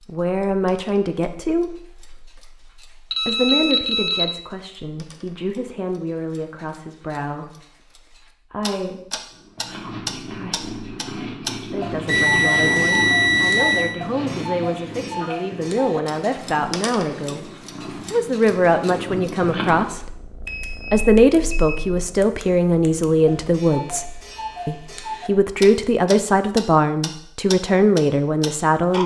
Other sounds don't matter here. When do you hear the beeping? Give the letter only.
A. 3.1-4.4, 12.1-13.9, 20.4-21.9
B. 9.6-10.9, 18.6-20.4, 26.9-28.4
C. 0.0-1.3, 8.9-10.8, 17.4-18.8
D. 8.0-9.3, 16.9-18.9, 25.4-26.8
A.